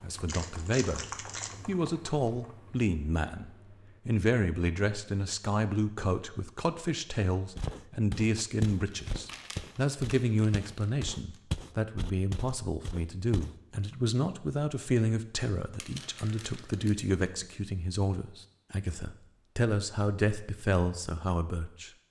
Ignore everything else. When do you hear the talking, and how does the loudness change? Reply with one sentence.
You can hear the talking briefly from 0.0 to 1.1 s; and from 1.6 to 21.9 s, at a steady volume.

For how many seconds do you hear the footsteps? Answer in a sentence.
The footsteps can be heard for 6 seconds in total.